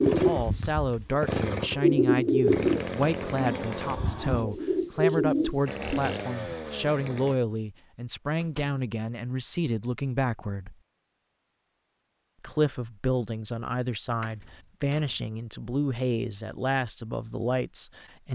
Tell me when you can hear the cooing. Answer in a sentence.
The cooing can be heard from 0.0 to 6.5 s.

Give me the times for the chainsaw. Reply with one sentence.
The chainsaw can be heard from 0.0 to 4.0 s and from 5.7 to 7.3 s.